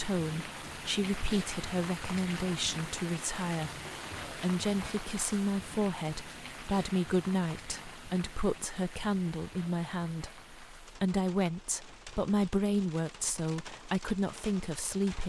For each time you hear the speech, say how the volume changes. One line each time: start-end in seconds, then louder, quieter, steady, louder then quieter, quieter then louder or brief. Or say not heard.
0.0-15.2 steady.